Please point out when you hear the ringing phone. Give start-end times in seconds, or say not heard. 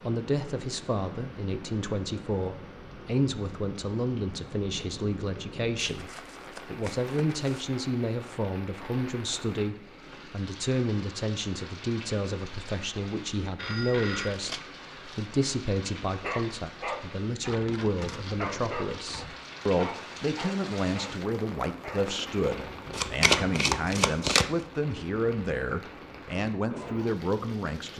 13.6-14.3.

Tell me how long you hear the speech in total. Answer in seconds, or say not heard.
28 s.